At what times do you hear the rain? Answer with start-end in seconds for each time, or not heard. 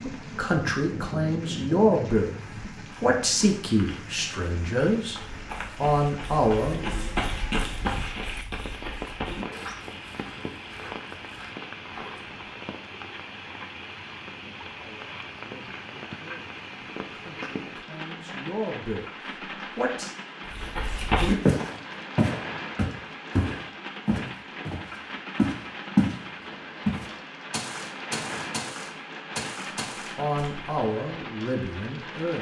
0.0-32.3.